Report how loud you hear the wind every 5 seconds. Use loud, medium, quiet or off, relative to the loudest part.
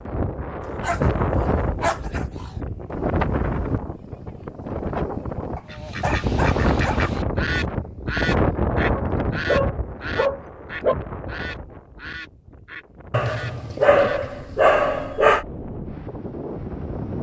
loud, loud, quiet, medium.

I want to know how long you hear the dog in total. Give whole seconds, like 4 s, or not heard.
8 s.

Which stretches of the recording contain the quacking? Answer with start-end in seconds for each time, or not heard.
5.7-14.2.